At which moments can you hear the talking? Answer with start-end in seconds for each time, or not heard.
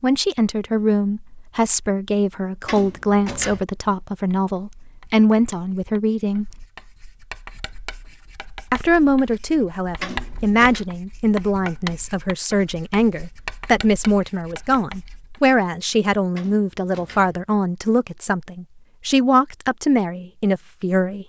0.0-6.7, 8.7-21.2.